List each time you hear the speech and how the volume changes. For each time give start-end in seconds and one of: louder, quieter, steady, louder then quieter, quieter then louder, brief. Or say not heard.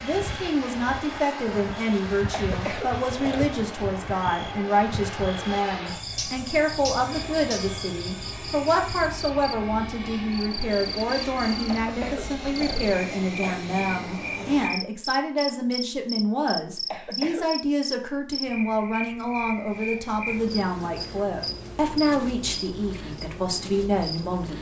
0.0-24.5 steady.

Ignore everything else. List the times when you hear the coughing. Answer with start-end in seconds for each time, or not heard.
2.3-3.5, 11.8-13.6, 16.9-17.5.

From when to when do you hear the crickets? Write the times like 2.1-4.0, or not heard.
0.0-24.5.